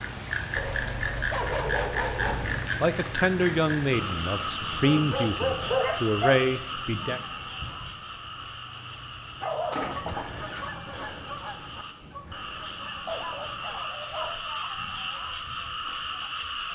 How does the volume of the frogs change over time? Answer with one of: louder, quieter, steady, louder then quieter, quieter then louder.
quieter then louder.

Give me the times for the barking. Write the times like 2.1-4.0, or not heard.
0.6-2.7, 4.8-6.4, 8.9-10.7, 13.1-14.7.